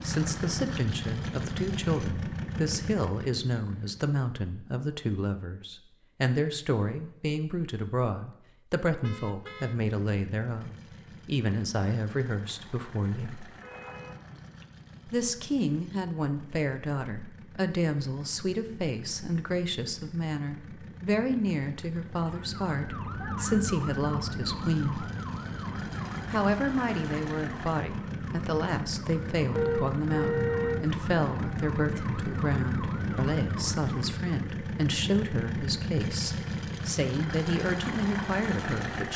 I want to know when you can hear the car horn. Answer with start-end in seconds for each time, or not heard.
9.0-9.8, 13.5-14.6, 29.6-30.9.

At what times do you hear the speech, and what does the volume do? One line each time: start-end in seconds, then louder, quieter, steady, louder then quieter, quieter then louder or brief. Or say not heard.
0.0-13.4 steady
15.1-25.1 steady
26.3-39.1 steady.